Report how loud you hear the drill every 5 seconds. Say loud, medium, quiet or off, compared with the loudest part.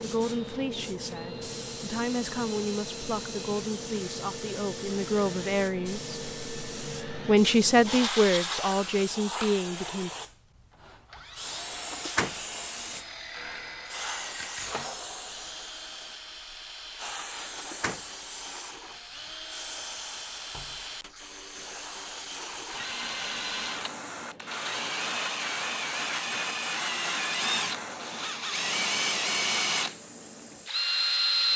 quiet, quiet, quiet, quiet, medium, loud, loud.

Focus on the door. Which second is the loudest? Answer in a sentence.
The loudest moment of the door is at 12 seconds.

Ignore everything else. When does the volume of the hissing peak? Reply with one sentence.
The loudest moment of the hissing is at 8 seconds.